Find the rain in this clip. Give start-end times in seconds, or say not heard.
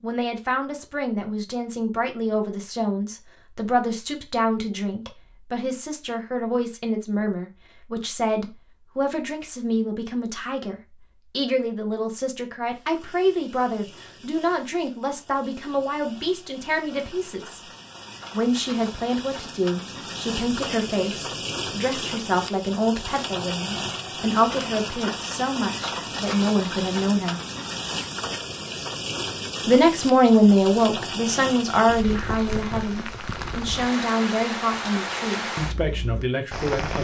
12.7-37.0.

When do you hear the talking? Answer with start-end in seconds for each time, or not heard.
0.0-17.6, 18.3-27.4, 29.6-37.0.